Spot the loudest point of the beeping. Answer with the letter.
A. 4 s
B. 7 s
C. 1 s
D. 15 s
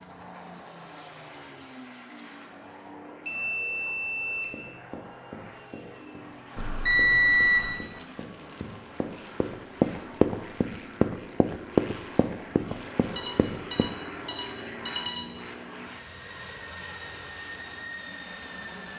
B.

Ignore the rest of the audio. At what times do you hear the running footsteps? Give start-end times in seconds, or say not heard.
4.5-13.9.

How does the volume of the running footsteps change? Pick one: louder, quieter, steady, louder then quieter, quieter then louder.
louder then quieter.